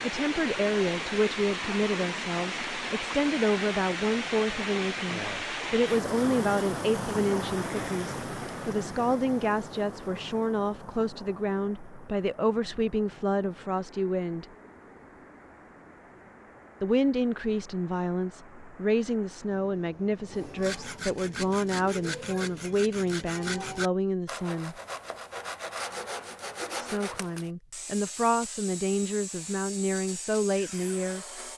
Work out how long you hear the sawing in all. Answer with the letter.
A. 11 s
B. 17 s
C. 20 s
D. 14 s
A.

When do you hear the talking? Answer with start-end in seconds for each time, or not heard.
0.0-14.4, 16.8-24.8, 26.8-31.2.